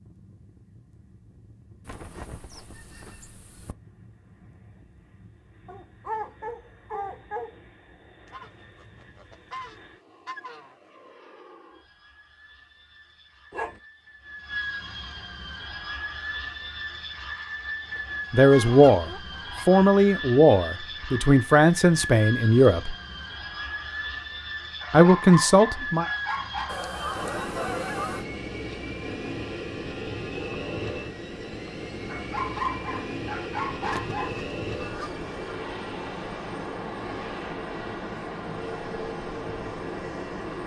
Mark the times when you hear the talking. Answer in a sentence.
You can hear the talking from 18.3 to 22.9 s and from 24.9 to 26.1 s.